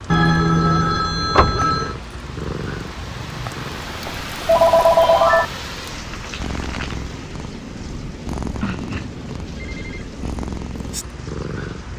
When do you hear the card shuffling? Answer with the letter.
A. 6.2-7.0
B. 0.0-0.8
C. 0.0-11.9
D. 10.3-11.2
A.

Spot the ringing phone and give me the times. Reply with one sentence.
The ringing phone can be heard from 0.1 to 1.9 s, from 4.0 to 5.5 s and from 8.6 to 10.1 s.